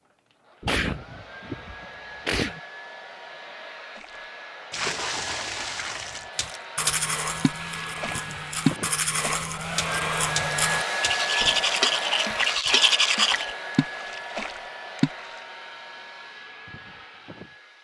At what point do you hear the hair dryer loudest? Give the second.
11 s.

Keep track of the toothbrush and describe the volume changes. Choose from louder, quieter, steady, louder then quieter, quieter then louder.
louder.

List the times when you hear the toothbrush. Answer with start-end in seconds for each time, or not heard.
6.3-13.5.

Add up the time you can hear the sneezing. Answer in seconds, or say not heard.
2 s.